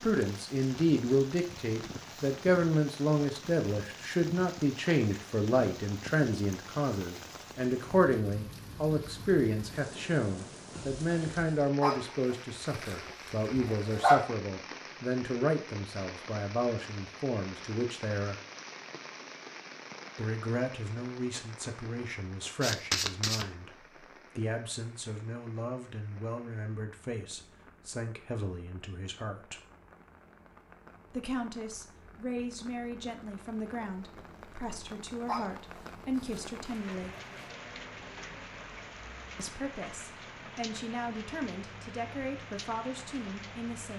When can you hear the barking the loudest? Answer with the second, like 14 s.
14 s.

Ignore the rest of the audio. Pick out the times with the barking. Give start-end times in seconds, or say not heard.
11.8-14.2, 35.2-37.5.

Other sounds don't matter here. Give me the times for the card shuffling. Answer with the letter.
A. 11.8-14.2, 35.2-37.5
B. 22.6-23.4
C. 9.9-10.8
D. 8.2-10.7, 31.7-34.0
B.